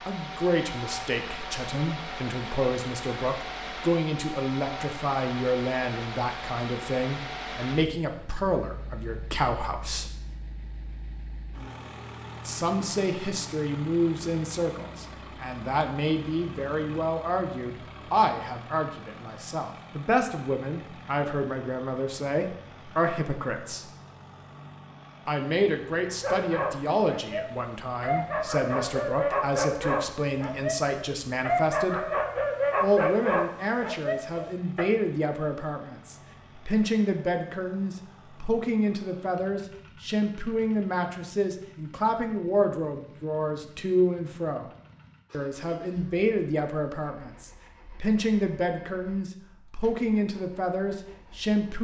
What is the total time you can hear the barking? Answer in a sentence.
The barking can be heard for 9 seconds in total.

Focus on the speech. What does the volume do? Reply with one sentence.
The loudness of the speech stays about the same.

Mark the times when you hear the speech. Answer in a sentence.
The speech can be heard from 0.1 to 10.1 s, from 12.4 to 23.9 s, from 25.2 to 32.0 s, from 32.8 to 44.7 s and from 45.3 to 51.7 s.